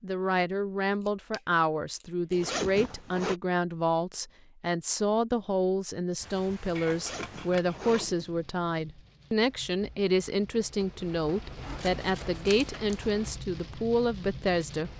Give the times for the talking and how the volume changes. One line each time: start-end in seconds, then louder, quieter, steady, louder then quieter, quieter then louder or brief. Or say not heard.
0.0-14.9 steady.